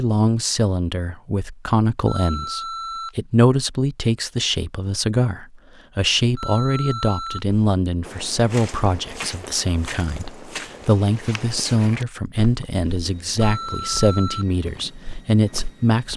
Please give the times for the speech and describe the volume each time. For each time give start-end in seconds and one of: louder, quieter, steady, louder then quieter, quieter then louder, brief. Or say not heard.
0.0-16.1 steady.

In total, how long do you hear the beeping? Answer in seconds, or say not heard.
3 s.